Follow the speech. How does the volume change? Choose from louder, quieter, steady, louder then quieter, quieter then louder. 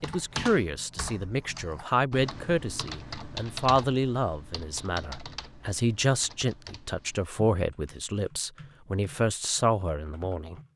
steady.